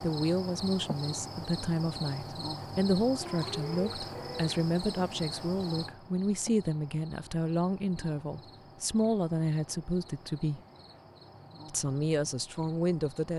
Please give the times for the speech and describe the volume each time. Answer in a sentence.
You can hear the speech from 0.0 to 10.6 s, at a steady volume; and briefly from 11.7 to 13.3 s.